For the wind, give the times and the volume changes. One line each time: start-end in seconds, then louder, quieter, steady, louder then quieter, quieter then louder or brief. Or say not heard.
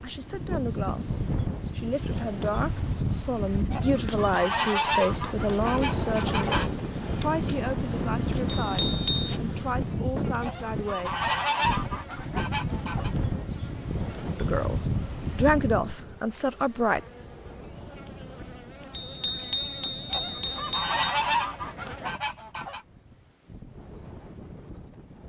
0.0-25.2 quieter.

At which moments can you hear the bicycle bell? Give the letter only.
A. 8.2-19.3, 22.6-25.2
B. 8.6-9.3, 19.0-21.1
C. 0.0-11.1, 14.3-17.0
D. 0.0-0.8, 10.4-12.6
B.